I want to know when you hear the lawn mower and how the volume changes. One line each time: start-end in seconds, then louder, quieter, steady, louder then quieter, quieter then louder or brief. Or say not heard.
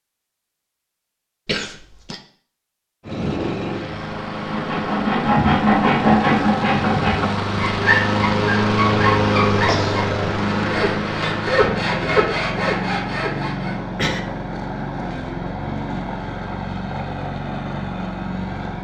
3.0-18.8 louder then quieter.